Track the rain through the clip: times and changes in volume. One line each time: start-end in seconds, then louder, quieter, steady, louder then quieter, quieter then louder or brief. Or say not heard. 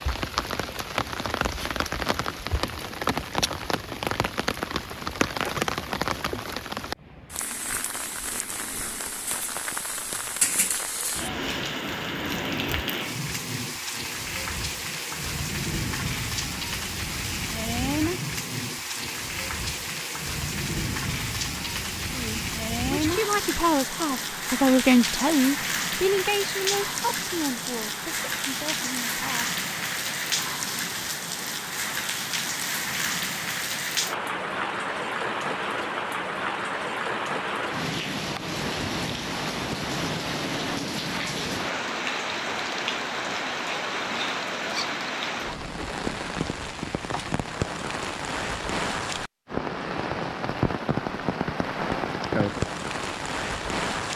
0.0-54.1 steady.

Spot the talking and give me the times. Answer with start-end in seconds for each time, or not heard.
22.1-29.6.